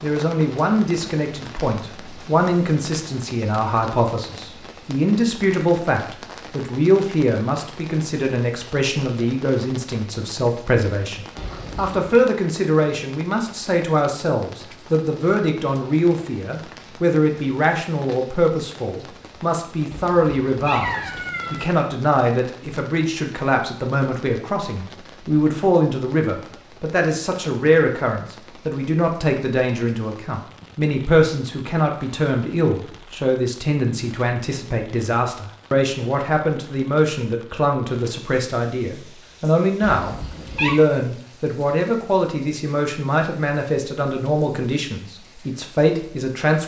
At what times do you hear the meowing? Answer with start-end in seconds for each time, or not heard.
11.3-12.2, 19.9-21.7, 39.8-40.8.